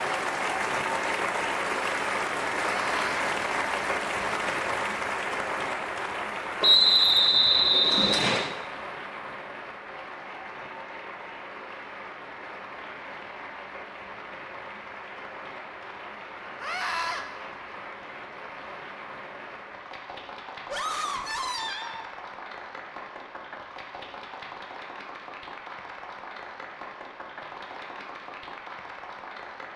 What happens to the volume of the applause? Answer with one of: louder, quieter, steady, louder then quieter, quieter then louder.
quieter.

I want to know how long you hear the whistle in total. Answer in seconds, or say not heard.
2 s.